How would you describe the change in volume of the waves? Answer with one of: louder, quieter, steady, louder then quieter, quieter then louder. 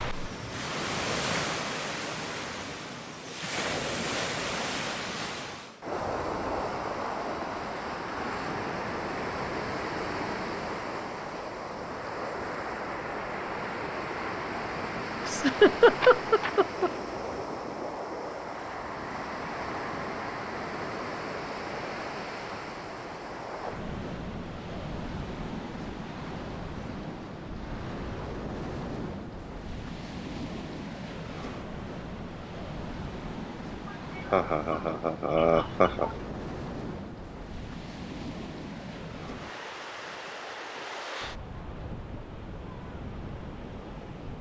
quieter.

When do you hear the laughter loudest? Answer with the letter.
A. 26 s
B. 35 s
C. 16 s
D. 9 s
C.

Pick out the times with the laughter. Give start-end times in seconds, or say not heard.
15.2-16.9, 34.3-36.1.